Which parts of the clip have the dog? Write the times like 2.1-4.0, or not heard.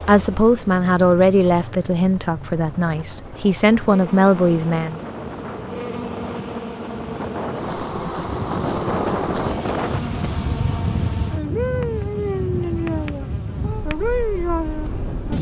not heard.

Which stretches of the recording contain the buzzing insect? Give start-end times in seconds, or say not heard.
0.0-15.3.